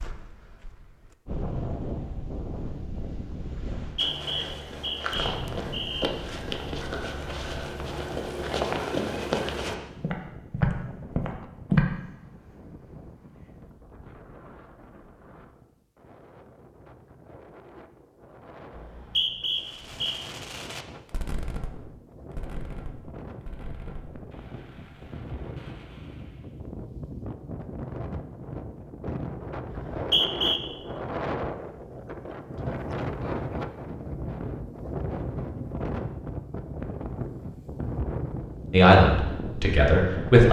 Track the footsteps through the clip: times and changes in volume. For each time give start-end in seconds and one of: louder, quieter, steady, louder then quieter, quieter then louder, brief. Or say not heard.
4.0-11.9 louder.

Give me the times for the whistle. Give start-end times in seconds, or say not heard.
3.8-6.1, 18.8-20.1, 29.7-30.6.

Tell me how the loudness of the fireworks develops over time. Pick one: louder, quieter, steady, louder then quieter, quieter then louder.
quieter.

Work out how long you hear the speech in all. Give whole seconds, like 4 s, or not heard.
2 s.